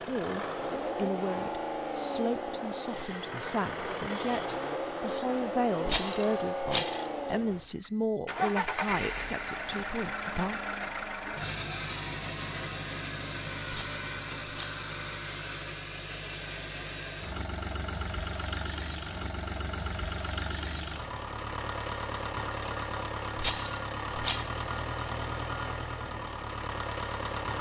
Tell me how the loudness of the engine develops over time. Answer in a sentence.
The volume of the engine stays about the same.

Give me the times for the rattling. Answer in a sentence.
You can hear the rattling from 5.8 to 7.0 s, from 13.7 to 14.8 s and from 23.4 to 24.4 s.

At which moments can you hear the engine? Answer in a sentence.
The engine can be heard from 0.0 to 27.5 s.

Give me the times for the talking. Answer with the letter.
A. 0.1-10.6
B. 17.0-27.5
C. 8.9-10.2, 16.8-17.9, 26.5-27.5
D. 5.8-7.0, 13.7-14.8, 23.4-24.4
A.